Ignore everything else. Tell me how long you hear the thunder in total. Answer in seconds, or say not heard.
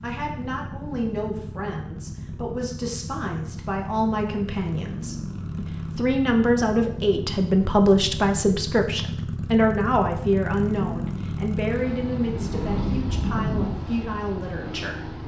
2 s.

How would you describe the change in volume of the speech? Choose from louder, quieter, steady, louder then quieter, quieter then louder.
louder then quieter.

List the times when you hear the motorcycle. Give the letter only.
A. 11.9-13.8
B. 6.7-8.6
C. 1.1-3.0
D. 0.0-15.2
D.